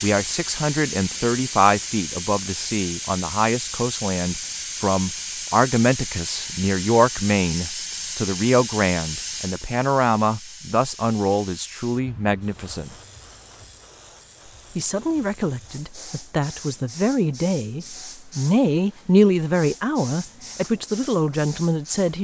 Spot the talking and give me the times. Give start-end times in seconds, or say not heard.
0.0-12.9, 14.8-22.2.